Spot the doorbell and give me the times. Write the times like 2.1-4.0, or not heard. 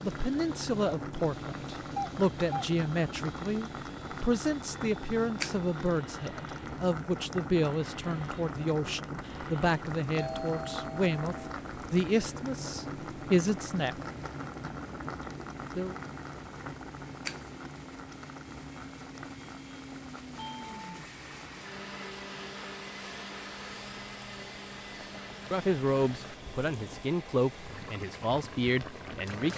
1.9-2.7, 10.2-11.6, 20.4-20.8.